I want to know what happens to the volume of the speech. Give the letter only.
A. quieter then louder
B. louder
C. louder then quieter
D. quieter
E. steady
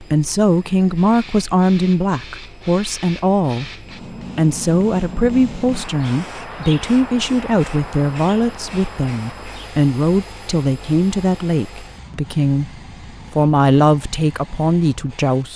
E.